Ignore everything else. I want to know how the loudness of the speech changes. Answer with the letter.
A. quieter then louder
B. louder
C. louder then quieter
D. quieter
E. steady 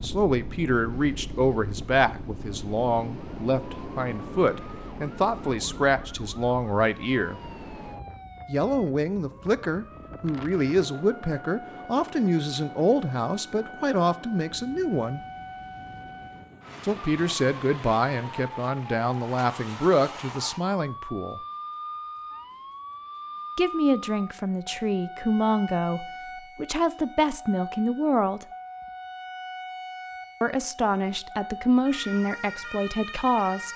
E.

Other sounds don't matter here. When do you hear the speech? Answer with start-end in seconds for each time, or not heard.
0.0-7.4, 8.4-15.2, 16.8-21.4, 23.6-28.4, 30.4-33.7.